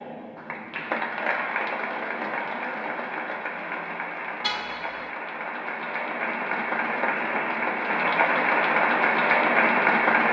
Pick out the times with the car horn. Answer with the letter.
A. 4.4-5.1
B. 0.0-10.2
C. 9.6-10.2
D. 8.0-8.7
A.